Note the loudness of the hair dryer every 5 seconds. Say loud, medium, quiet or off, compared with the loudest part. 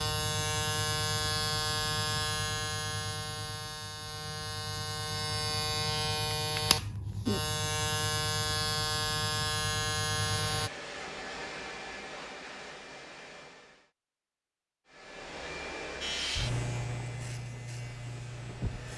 off, off, loud, loud.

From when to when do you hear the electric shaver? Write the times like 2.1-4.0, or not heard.
0.0-10.7, 16.0-18.9.